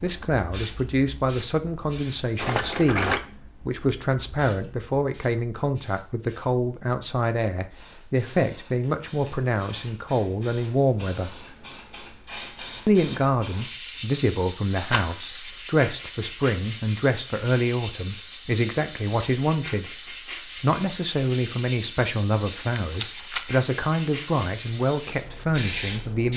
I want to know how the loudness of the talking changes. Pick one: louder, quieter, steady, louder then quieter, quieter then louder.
steady.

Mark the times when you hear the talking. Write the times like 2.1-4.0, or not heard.
0.0-11.4, 12.8-19.9, 20.6-26.3.